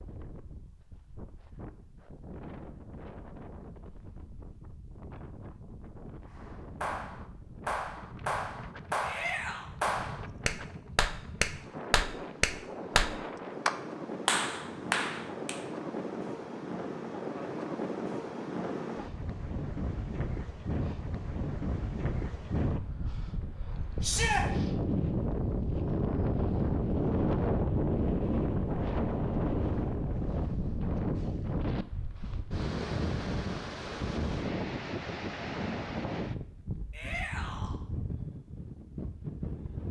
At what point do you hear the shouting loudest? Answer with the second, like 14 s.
24 s.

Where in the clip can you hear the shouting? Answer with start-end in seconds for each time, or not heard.
9.0-9.7, 24.0-24.4, 36.9-37.8.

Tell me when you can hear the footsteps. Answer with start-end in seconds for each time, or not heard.
not heard.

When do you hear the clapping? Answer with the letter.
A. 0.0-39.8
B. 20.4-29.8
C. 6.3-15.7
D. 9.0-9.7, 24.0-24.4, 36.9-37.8
C.